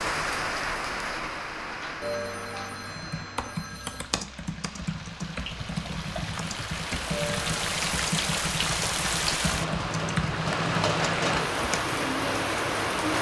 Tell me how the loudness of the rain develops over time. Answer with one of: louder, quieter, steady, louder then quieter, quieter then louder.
quieter then louder.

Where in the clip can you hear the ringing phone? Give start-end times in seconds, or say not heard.
2.0-4.0, 7.1-7.5.